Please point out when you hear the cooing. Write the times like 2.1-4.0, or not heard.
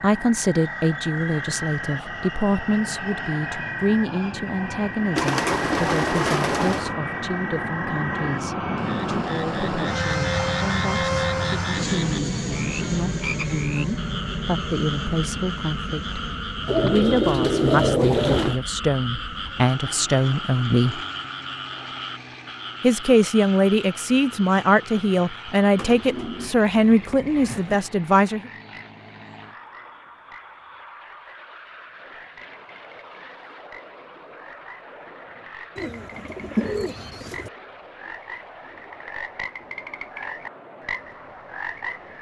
5.2-7.0, 16.6-18.6, 25.8-27.8, 35.8-37.5.